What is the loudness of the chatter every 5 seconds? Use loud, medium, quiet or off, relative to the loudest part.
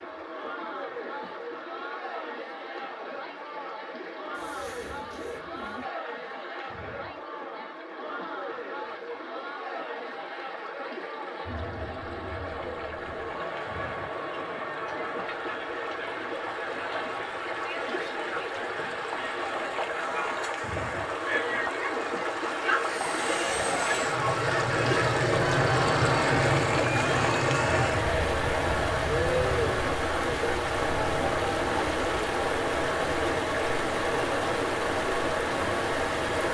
medium, medium, medium, medium, loud, loud, loud, medium.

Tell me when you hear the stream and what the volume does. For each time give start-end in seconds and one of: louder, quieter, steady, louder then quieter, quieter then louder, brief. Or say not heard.
0.0-36.5 louder.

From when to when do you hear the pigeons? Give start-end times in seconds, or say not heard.
4.3-5.8.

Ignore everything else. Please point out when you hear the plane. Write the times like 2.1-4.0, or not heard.
22.7-36.5.